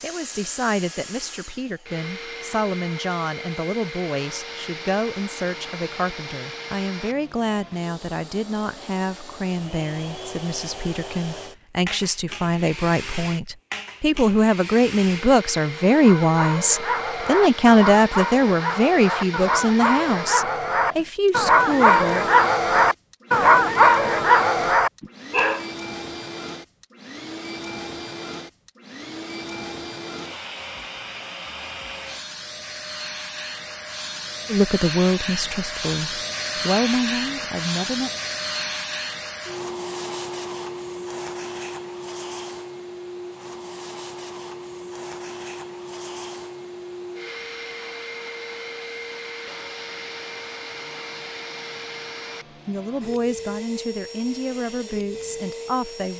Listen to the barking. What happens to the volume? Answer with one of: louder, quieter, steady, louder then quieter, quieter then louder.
louder.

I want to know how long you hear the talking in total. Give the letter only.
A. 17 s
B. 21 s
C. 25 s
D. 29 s
D.